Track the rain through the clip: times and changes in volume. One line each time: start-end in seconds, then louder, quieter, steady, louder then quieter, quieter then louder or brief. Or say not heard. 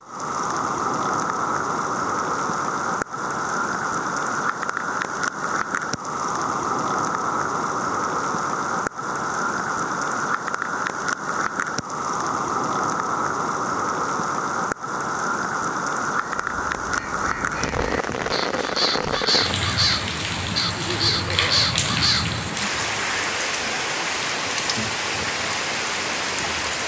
0.0-26.8 steady.